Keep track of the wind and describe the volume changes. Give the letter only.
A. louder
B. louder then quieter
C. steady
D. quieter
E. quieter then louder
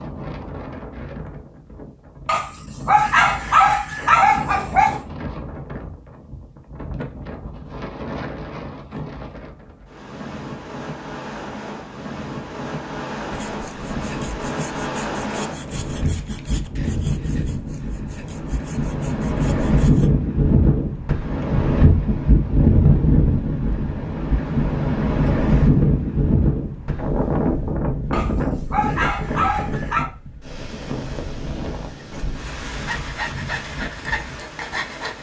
B.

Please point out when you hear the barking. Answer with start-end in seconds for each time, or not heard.
2.2-5.0, 28.1-30.1.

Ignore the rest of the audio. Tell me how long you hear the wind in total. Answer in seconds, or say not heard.
35 s.